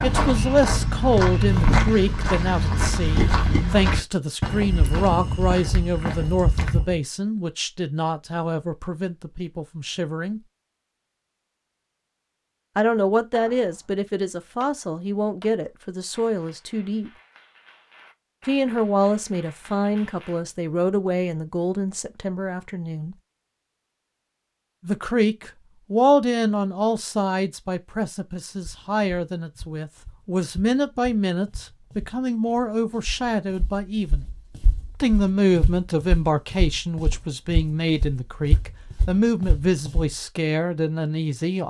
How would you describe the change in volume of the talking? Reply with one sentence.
The volume of the talking stays about the same.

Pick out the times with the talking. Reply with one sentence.
The talking can be heard from 0.0 to 10.4 s, from 12.8 to 17.1 s, from 18.4 to 23.1 s, from 24.9 to 34.2 s and from 35.0 to 41.6 s.